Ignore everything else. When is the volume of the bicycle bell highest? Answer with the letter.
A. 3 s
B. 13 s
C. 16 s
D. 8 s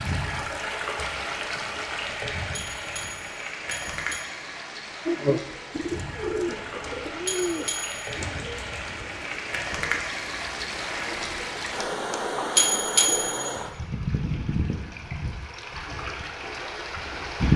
B.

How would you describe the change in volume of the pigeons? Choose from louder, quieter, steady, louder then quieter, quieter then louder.
quieter.